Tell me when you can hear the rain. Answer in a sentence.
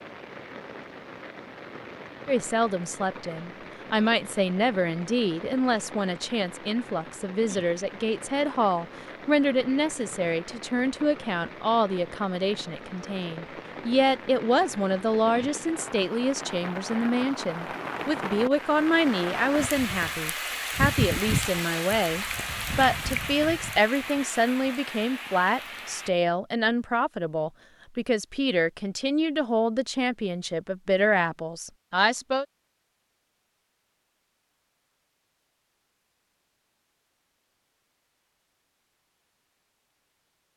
The rain can be heard from 0.0 to 26.1 s.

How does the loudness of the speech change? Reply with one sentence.
The volume of the speech stays about the same.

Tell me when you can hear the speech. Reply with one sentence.
You can hear the speech from 2.2 to 32.5 s.